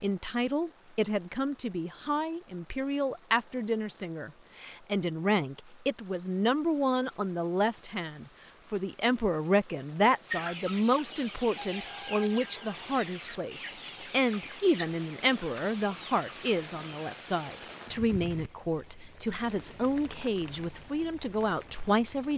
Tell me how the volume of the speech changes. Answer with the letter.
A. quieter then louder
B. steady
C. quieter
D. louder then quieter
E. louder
B.